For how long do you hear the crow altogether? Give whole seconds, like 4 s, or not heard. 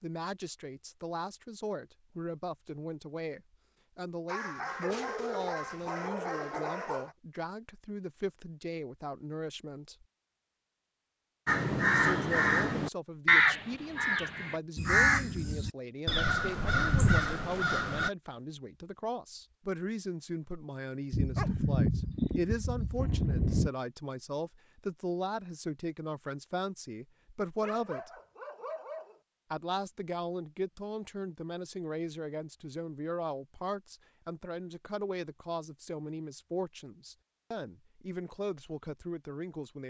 7 s.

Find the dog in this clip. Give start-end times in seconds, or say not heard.
4.2-7.2, 21.1-23.7, 27.6-29.2.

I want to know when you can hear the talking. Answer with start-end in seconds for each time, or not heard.
0.0-10.1, 11.9-28.1, 29.5-39.8.